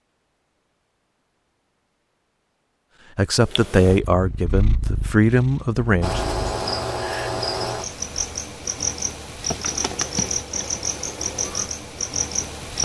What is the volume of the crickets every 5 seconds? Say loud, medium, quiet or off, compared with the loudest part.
off, loud, loud.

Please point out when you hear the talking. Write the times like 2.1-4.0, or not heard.
3.1-6.2.